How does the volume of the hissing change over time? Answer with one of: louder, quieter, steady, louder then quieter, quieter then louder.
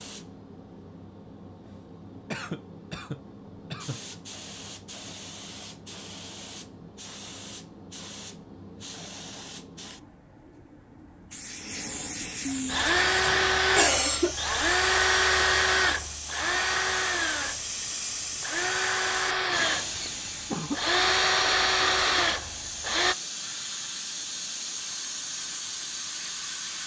louder.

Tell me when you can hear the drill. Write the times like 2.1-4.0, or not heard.
12.7-23.1.